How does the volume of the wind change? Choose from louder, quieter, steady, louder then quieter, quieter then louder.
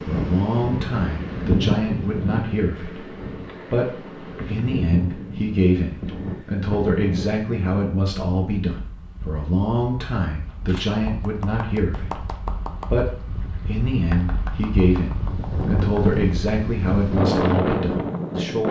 quieter then louder.